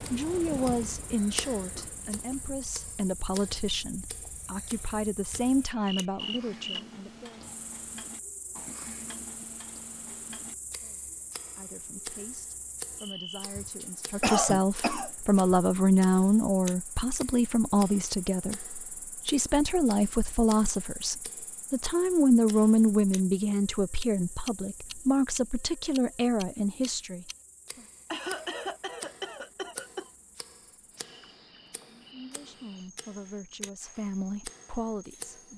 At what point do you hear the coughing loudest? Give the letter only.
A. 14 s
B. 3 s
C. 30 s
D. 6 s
A.